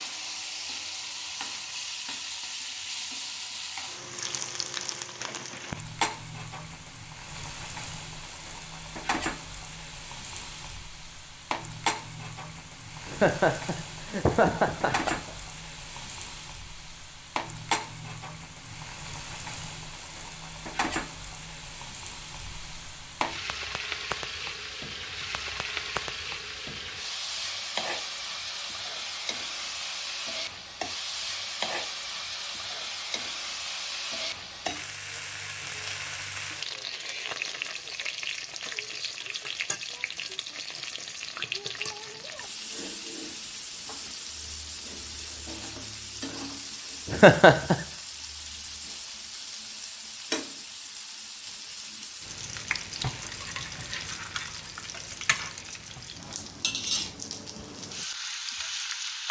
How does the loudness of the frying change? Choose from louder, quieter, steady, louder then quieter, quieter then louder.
steady.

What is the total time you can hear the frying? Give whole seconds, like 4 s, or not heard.
59 s.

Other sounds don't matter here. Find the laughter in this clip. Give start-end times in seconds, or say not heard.
13.1-15.3, 47.0-47.8.